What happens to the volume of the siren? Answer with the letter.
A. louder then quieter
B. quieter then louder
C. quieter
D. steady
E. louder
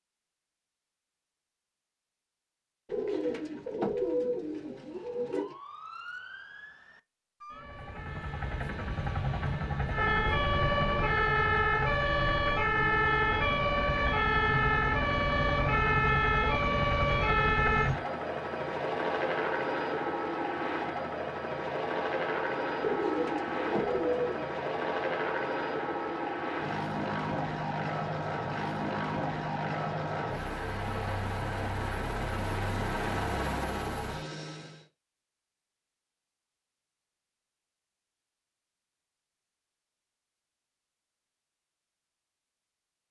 E.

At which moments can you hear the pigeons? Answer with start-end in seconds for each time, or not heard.
2.9-5.5, 22.8-24.5.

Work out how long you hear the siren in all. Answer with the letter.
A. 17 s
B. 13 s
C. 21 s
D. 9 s
B.